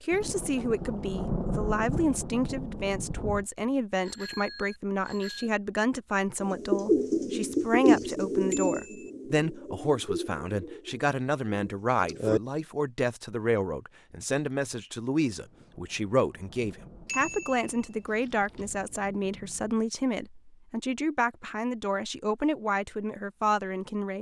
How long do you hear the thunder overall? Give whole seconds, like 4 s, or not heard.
8 s.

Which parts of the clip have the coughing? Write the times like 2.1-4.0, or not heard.
not heard.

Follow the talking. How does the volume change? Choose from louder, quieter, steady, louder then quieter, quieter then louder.
steady.